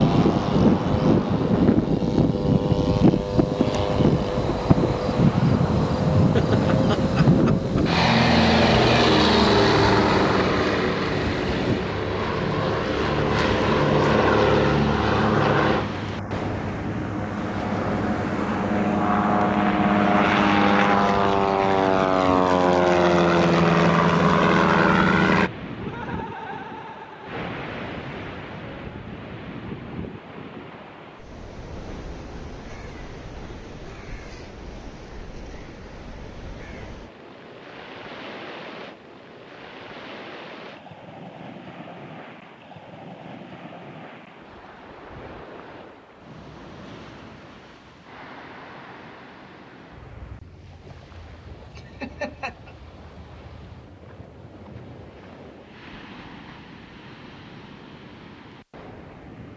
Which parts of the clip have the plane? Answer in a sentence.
You can hear the plane from 0.0 to 25.5 s.